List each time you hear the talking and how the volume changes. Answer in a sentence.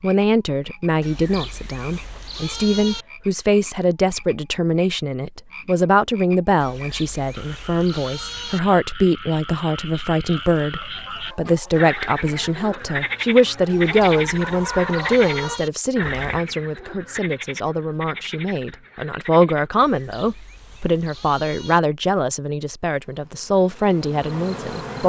The talking can be heard from 0.0 to 25.0 s, at a steady volume.